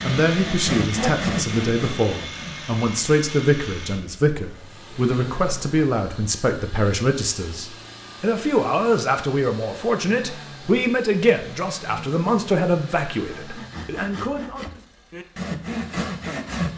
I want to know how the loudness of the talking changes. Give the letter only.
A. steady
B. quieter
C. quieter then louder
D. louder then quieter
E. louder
A.